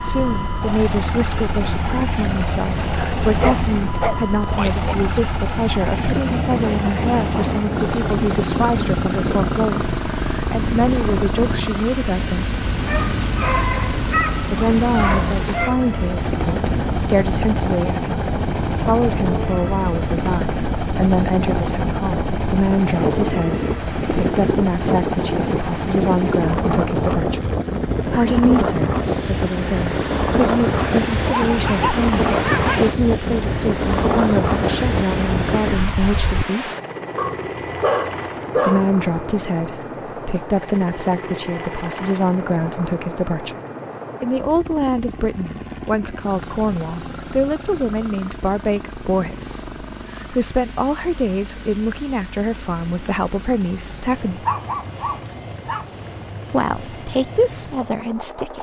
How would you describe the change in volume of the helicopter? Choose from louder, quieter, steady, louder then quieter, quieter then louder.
quieter.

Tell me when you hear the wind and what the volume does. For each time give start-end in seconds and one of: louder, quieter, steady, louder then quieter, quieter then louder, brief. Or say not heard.
0.0-36.5 louder.